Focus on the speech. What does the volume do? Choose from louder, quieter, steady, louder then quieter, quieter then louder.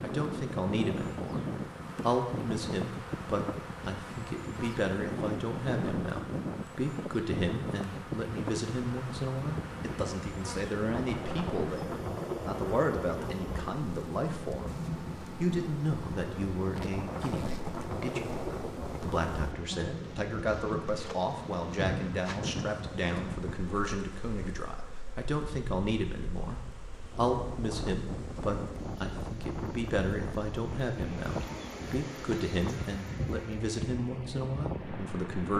steady.